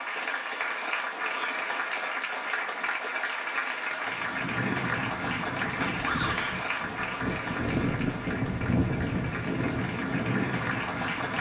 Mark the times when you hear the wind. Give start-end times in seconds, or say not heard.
4.0-11.3.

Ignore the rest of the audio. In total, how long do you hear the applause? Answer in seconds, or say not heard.
11 s.